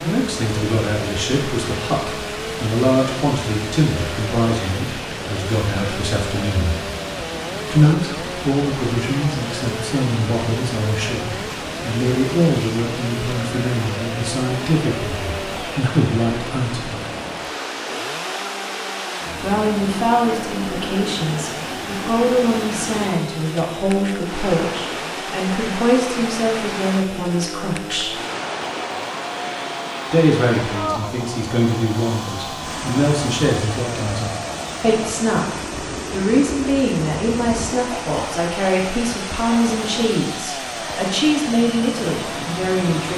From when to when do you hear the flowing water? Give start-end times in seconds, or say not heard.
0.0-43.1.